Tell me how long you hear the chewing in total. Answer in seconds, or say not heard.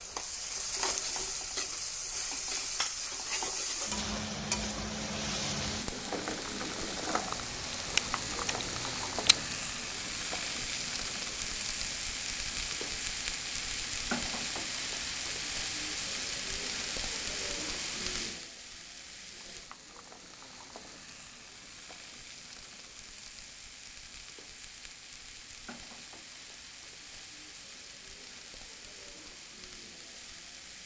2 s.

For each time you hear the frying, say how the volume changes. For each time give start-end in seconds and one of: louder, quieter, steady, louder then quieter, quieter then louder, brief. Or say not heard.
0.0-30.8 quieter.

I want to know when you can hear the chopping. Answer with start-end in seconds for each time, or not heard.
not heard.